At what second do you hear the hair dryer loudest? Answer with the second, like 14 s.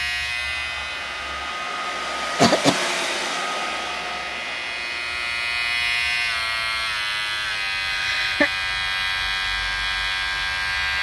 3 s.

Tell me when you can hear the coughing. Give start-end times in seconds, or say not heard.
2.4-2.9, 7.9-8.5.